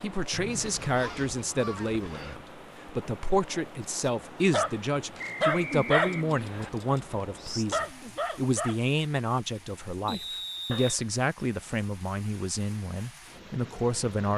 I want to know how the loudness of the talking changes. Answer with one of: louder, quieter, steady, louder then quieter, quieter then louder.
steady.